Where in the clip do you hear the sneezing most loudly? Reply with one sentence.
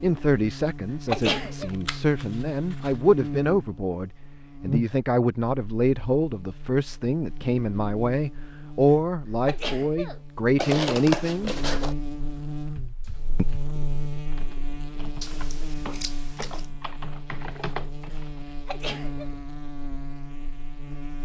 The volume of the sneezing peaks at 1 second.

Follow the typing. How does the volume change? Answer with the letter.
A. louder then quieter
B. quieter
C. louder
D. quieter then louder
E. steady
C.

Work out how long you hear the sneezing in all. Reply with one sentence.
You can hear the sneezing for 4 seconds altogether.